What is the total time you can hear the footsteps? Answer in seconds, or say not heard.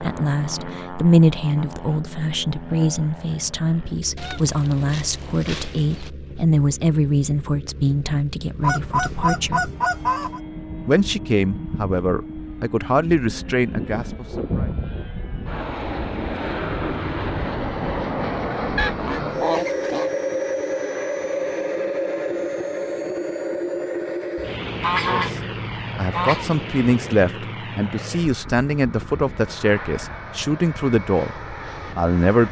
not heard.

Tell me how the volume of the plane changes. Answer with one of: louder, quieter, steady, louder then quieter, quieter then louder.
louder then quieter.